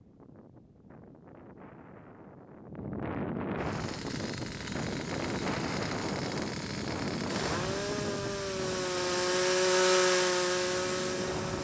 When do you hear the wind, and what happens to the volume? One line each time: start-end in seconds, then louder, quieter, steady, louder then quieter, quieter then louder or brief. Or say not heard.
0.0-11.5 louder then quieter.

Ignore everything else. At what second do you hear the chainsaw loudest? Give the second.
10 s.